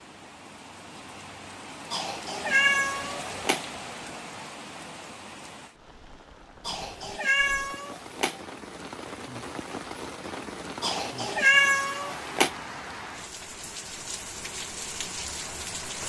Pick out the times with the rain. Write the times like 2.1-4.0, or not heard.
0.0-16.0.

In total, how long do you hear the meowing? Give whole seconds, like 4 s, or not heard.
5 s.